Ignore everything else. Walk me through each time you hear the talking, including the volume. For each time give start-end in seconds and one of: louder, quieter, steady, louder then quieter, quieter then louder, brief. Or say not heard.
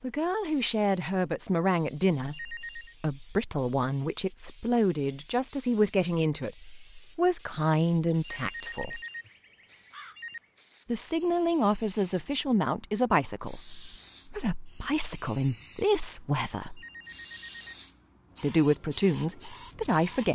0.0-9.0 steady
10.8-16.8 quieter then louder
18.4-20.2 brief.